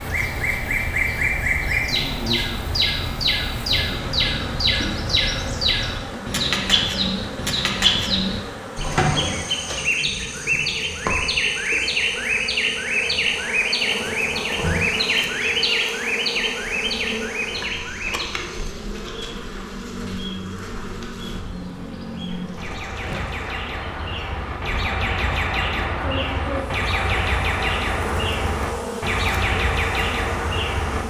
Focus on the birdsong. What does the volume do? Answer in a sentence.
The volume of the birdsong goes down, then up.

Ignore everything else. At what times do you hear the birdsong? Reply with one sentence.
You can hear the birdsong from 0.0 to 31.0 s.